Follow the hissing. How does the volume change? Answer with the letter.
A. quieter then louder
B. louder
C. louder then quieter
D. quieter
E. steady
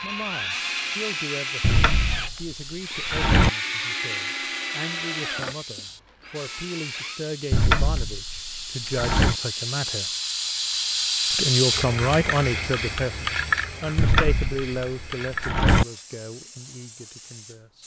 C.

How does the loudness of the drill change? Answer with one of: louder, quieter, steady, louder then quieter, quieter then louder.
quieter.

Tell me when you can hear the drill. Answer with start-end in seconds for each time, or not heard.
0.0-7.2.